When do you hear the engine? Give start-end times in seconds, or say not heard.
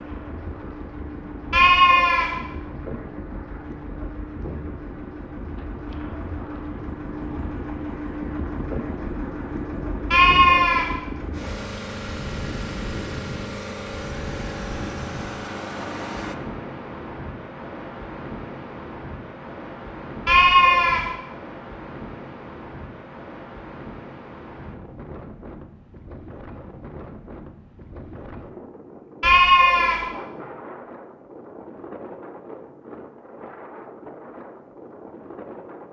0.0-16.4.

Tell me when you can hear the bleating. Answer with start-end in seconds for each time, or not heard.
1.5-2.4, 10.1-10.9, 20.2-21.1, 29.2-30.1.